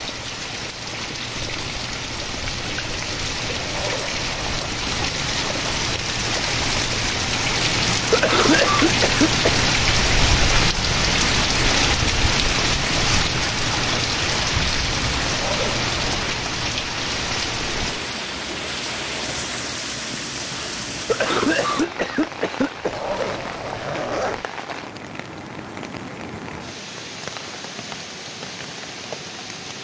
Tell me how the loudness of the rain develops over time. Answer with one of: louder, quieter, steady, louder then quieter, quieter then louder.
louder then quieter.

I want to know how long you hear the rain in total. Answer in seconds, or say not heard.
30 s.